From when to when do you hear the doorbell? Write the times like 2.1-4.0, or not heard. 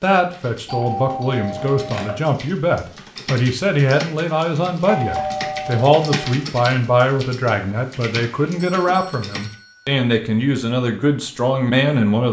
0.7-2.2, 4.8-6.3, 8.6-9.9.